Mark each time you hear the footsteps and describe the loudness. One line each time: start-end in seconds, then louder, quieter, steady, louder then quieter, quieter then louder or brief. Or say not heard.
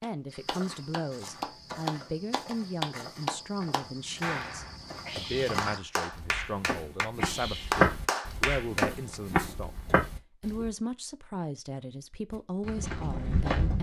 0.2-10.7 louder
12.3-13.7 brief.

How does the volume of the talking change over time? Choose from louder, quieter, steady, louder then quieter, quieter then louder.
steady.